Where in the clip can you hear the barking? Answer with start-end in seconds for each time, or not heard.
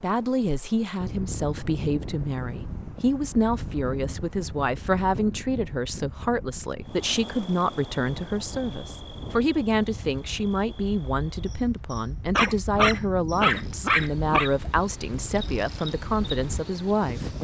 12.3-14.5.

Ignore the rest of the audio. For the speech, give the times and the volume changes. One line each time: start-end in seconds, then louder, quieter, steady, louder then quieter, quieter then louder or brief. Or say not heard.
0.0-17.3 steady.